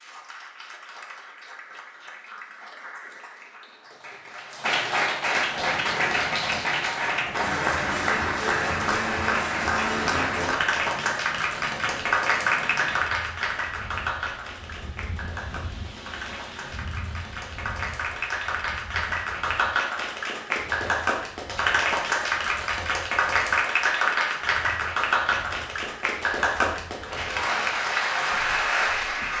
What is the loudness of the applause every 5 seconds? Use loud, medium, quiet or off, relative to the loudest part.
medium, loud, loud, medium, loud, loud.